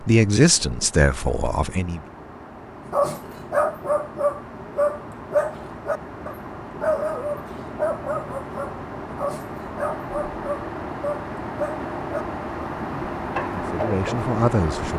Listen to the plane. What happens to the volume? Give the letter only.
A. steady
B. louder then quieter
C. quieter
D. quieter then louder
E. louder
E.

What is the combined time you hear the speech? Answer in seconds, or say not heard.
4 s.